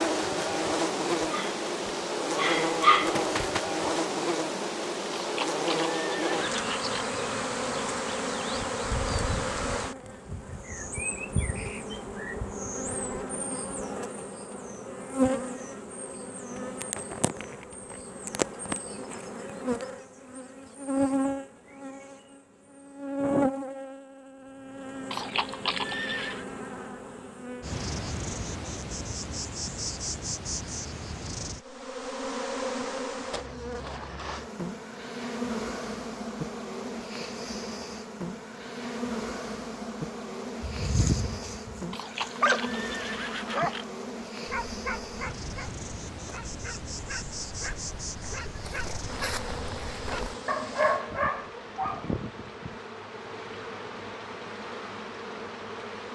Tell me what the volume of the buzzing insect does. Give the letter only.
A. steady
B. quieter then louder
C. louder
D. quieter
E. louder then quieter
D.